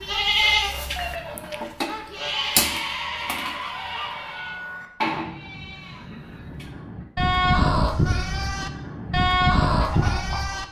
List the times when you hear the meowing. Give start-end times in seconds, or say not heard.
0.9-1.8.